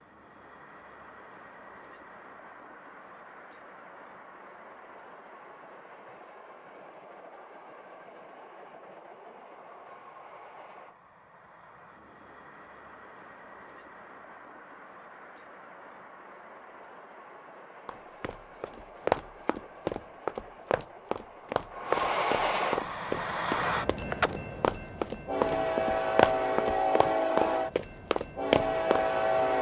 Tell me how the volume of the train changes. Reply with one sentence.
The loudness of the train goes up.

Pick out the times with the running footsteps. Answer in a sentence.
You can hear the running footsteps from 17.9 to 29.4 s.